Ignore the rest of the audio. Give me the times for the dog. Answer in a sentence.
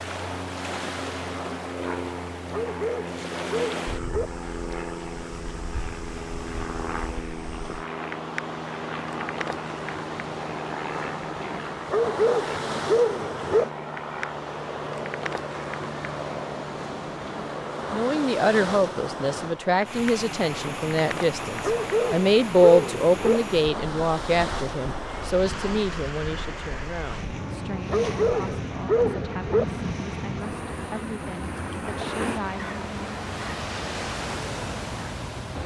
You can hear the dog from 2.5 to 4.3 s, from 11.9 to 13.7 s, from 21.6 to 23.4 s and from 27.9 to 29.6 s.